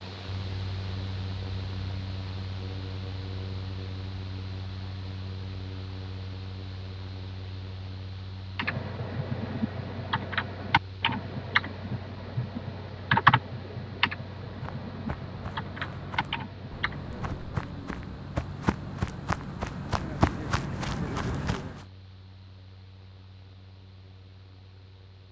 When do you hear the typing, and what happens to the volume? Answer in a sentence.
The typing can be heard from 8.6 to 17.3 s, getting louder then quieter.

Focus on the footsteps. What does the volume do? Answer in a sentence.
The volume of the footsteps goes up.